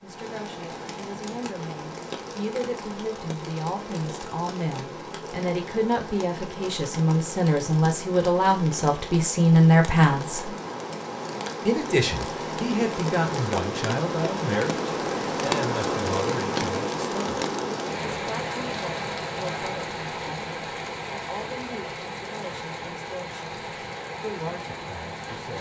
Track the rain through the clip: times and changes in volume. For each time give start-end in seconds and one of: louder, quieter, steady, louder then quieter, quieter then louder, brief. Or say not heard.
0.0-25.5 louder then quieter.